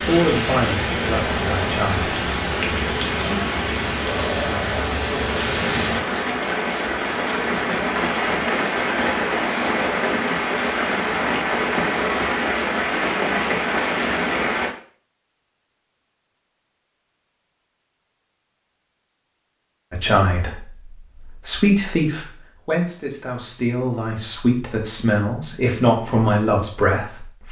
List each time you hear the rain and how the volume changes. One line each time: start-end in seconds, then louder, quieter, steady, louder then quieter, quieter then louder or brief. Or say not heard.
0.0-14.7 steady.